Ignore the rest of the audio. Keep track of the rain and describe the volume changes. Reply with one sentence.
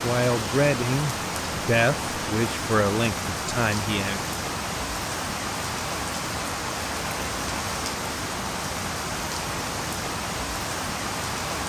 The volume of the rain stays about the same.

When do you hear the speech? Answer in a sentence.
You can hear the speech from 0.0 to 4.3 s.